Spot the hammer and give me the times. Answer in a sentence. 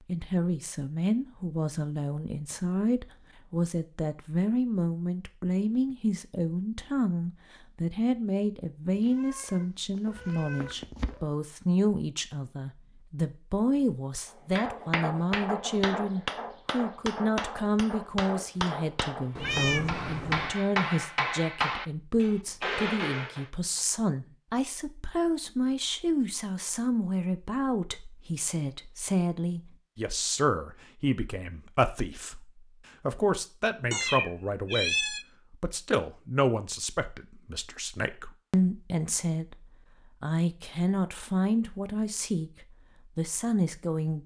You can hear the hammer from 14.6 to 23.4 s.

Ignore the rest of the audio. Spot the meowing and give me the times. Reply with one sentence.
The meowing can be heard from 8.9 to 11.2 s, from 19.4 to 20.6 s and from 33.9 to 35.2 s.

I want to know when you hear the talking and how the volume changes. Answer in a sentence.
The talking can be heard from 0.1 to 44.2 s, at a steady volume.